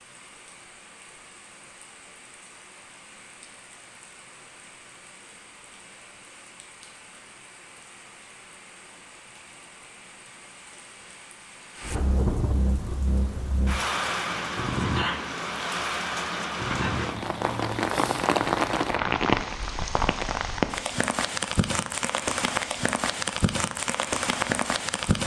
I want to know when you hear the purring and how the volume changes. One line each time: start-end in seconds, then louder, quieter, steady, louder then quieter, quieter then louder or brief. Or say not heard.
not heard.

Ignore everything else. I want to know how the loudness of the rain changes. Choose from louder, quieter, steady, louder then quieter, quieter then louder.
louder.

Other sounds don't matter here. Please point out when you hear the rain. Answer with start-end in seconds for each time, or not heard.
0.0-25.2.